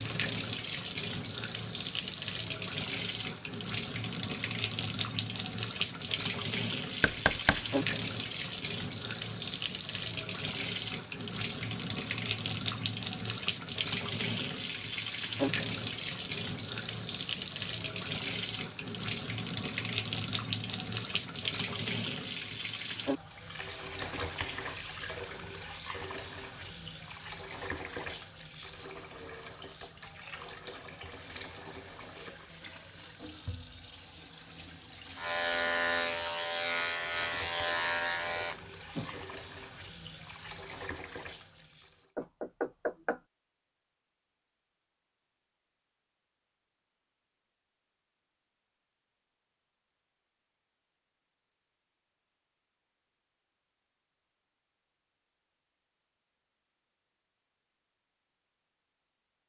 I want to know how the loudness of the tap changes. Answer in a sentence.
The volume of the tap goes down.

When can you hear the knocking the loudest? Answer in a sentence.
The volume of the knocking peaks at 7 seconds.